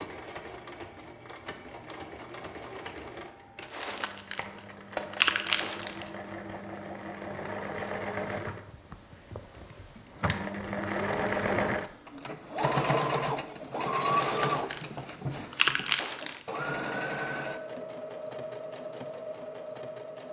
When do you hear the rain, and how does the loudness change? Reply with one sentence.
The rain can't be heard in this clip.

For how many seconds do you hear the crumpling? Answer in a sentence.
You can hear the crumpling for 5 seconds altogether.